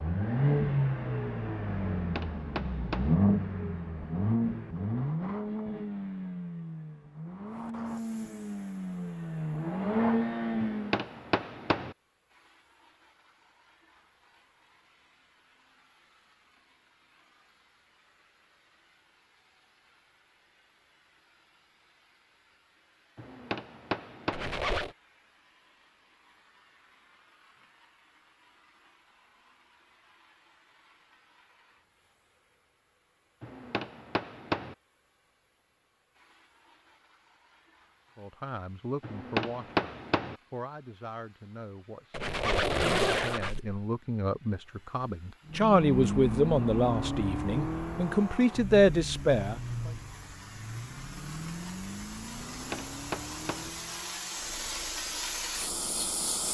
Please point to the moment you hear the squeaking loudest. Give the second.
43 s.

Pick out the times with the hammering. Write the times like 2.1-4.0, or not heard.
1.9-3.1, 10.6-11.9, 23.1-24.5, 33.4-34.8, 39.0-40.4, 52.5-53.8.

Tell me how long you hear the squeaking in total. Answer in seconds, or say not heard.
2 s.